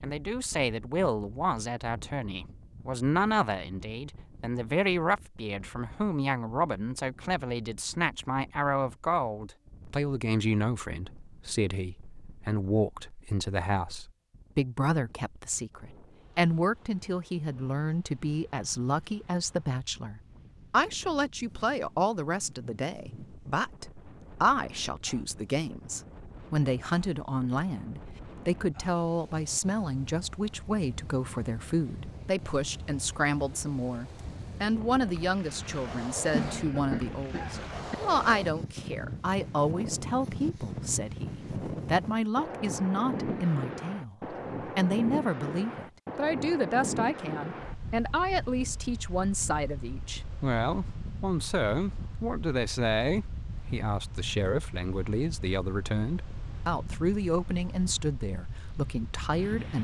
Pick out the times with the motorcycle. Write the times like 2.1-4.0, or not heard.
not heard.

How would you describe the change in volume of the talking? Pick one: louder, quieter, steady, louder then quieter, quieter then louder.
steady.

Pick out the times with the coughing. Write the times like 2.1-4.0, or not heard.
36.3-38.0.